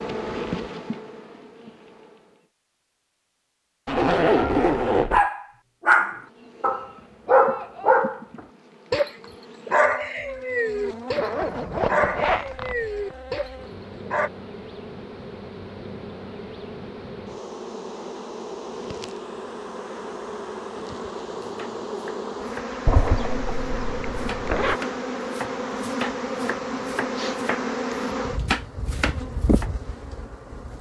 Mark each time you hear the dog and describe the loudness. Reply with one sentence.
You can hear the dog from 4.3 to 14.3 s, getting quieter.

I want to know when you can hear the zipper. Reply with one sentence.
The zipper can be heard from 3.9 to 5.2 s, from 11.2 to 13.2 s and from 22.9 to 24.8 s.